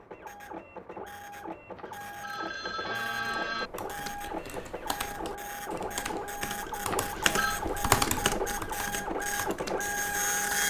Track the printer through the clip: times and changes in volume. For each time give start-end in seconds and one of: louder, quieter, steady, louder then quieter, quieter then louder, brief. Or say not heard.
0.0-10.6 louder.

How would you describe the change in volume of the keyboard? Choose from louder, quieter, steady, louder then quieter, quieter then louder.
louder then quieter.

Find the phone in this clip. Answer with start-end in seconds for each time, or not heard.
1.8-3.7, 6.9-7.6.